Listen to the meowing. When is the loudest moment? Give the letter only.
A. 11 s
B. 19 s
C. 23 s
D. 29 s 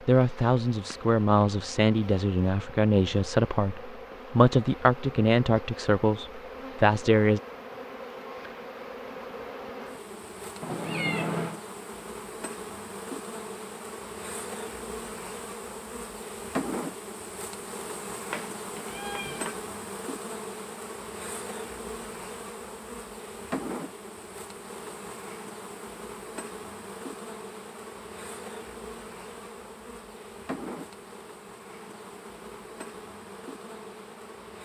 A.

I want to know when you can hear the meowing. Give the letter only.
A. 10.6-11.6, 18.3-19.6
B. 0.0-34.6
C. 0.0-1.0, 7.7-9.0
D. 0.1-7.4
A.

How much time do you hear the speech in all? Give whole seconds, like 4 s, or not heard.
7 s.